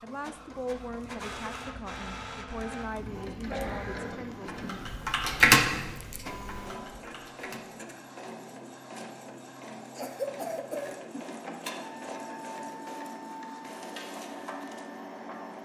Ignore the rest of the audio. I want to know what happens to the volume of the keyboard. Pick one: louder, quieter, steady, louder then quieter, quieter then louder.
louder then quieter.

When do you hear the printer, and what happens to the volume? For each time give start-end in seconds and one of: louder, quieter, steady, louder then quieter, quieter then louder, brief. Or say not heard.
0.0-15.6 steady.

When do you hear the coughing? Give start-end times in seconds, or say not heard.
3.5-4.2, 9.9-10.9.